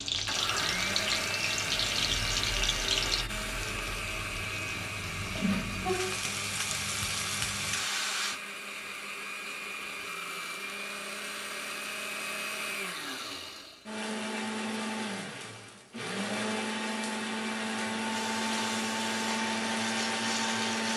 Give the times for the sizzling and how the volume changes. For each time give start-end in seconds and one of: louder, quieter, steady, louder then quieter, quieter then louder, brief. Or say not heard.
0.0-8.4 quieter then louder
18.1-20.9 brief.